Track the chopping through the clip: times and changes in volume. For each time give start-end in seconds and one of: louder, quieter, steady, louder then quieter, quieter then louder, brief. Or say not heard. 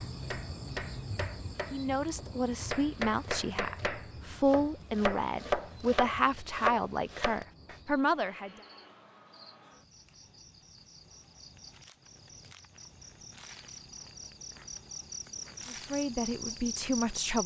0.0-7.8 louder.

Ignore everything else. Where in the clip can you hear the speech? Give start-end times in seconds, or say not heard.
1.7-8.5, 15.7-17.4.